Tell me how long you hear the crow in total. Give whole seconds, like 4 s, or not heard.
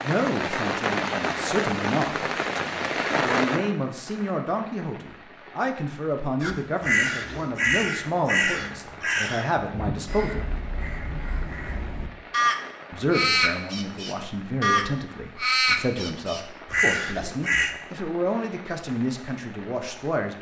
11 s.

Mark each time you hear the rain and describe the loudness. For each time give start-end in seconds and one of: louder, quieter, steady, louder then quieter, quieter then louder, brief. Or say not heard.
0.0-20.3 quieter.